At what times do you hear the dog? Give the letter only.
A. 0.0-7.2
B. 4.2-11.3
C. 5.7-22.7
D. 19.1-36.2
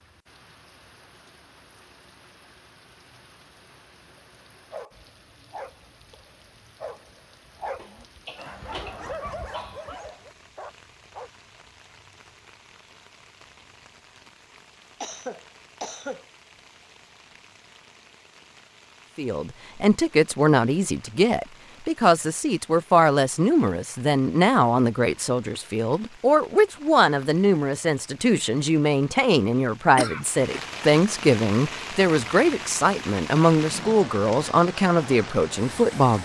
B.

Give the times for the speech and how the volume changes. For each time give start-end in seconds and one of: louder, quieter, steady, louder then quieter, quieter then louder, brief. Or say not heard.
19.1-36.2 steady.